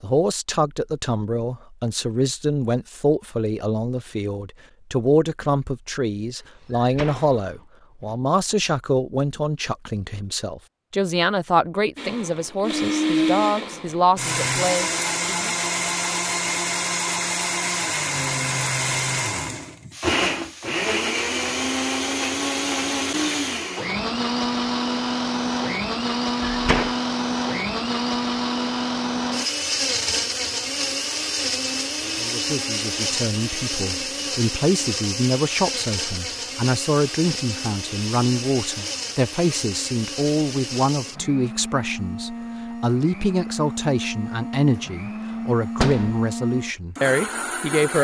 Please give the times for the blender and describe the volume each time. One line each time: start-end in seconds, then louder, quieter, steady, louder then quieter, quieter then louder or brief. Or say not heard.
11.9-47.9 quieter.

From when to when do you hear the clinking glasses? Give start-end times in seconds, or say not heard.
not heard.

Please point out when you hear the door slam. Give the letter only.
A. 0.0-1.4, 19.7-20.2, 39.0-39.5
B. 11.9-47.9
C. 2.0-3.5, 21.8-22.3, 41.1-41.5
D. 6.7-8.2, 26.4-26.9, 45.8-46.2
D.